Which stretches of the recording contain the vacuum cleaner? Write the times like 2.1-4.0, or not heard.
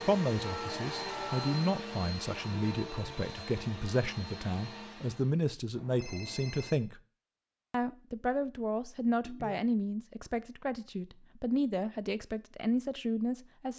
0.0-5.3.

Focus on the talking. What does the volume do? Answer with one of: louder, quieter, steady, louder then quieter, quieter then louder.
steady.